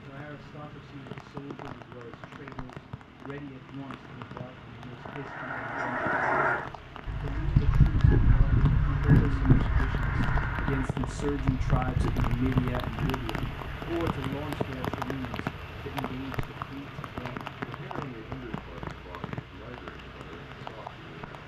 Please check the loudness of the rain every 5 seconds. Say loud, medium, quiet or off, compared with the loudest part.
medium, medium, loud, loud, medium.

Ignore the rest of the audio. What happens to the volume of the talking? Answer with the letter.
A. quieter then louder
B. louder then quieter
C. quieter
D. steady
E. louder
B.